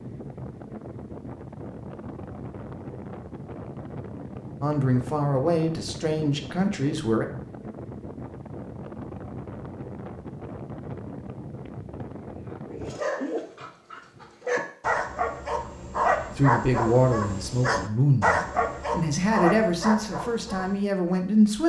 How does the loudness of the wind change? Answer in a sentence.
The loudness of the wind stays about the same.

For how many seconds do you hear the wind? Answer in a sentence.
The wind can be heard for 13 seconds in total.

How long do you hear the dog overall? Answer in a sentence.
The dog can be heard for 8 seconds in total.